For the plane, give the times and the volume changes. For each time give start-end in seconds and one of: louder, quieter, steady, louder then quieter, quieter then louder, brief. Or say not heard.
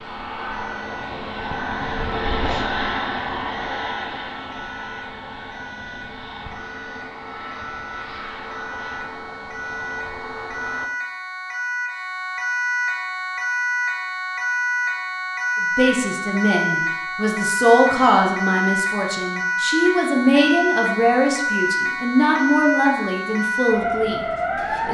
0.0-10.9 quieter.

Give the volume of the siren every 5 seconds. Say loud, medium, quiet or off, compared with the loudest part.
quiet, quiet, loud, loud, loud.